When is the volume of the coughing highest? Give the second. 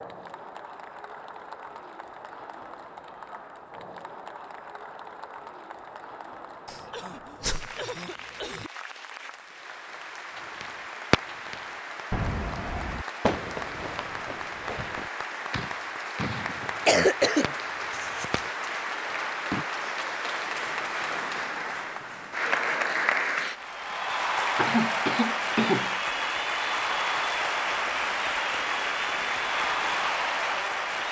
17 s.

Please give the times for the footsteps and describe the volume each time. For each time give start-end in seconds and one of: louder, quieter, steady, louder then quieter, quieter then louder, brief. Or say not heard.
not heard.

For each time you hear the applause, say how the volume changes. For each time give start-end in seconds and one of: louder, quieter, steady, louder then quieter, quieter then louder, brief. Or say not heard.
0.0-31.0 louder.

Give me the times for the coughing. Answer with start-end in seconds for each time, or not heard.
6.7-8.7, 16.6-18.4, 24.6-25.9.